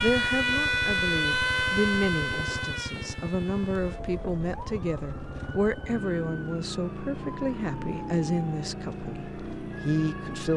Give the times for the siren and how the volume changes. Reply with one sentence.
The siren can be heard from 0.0 to 10.5 s, getting quieter.